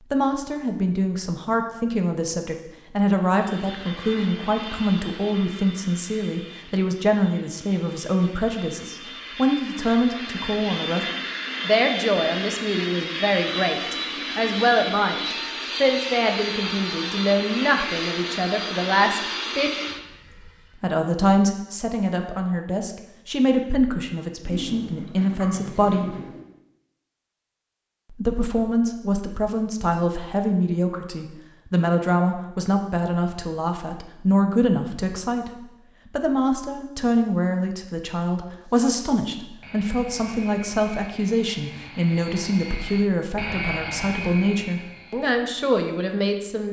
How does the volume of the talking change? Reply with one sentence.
The volume of the talking stays about the same.